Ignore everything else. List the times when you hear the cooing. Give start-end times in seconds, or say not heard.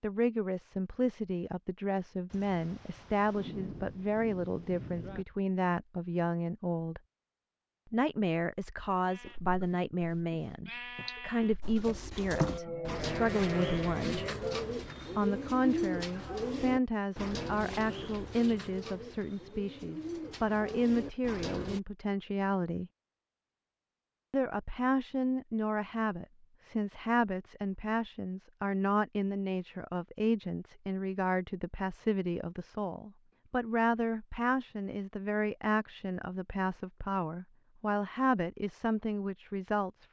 11.6-21.8.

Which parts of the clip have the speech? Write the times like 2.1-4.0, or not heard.
0.0-7.0, 7.9-14.2, 15.2-22.9, 24.3-40.0.